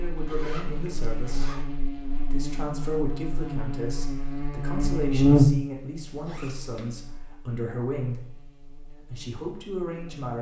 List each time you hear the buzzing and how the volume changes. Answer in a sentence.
You can hear the buzzing from 0.0 to 10.3 s, getting louder then quieter.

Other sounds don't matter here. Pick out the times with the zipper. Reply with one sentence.
You can hear the zipper from 0.2 to 1.6 s and from 6.0 to 7.0 s.